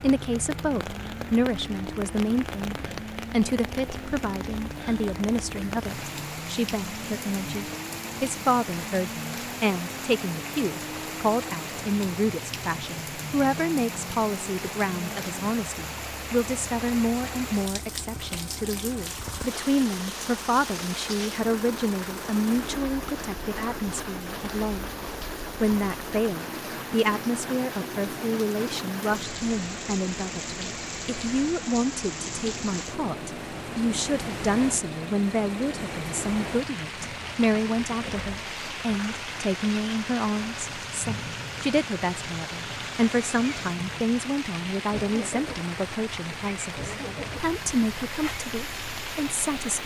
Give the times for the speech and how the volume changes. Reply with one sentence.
You can hear the speech from 0.0 to 24.9 s, at a steady volume; and from 25.6 to 49.8 s, at a steady volume.